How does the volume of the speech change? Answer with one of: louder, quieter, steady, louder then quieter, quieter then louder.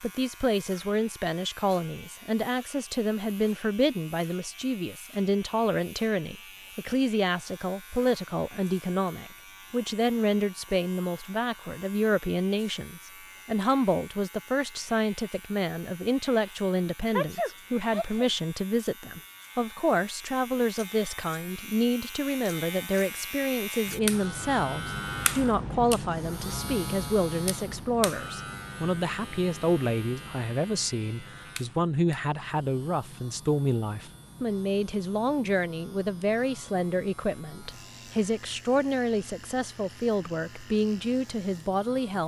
steady.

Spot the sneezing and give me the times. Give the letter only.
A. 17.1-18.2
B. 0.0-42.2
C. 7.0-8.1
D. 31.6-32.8
A.